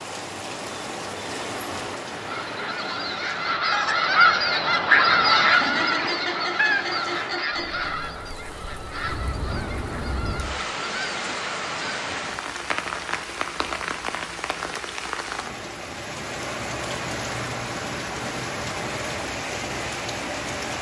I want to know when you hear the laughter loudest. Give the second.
6 s.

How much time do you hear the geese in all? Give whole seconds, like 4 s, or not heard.
10 s.